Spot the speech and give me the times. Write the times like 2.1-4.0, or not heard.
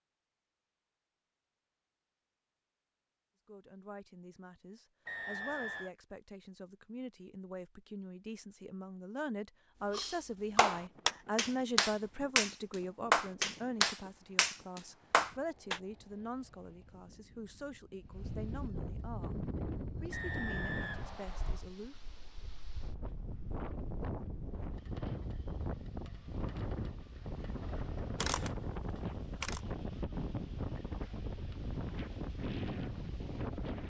3.5-22.0.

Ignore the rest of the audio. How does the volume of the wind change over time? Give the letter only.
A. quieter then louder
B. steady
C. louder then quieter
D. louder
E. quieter
D.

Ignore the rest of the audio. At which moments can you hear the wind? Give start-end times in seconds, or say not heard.
10.3-33.8.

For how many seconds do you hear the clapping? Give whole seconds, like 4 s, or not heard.
6 s.